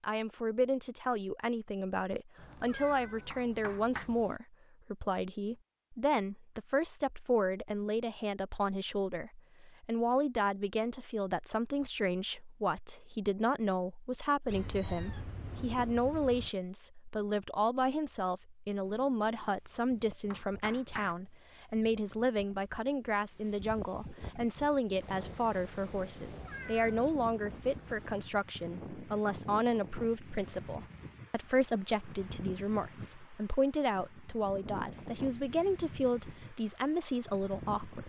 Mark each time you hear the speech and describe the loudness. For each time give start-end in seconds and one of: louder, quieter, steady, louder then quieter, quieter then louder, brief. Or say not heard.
0.0-38.0 steady.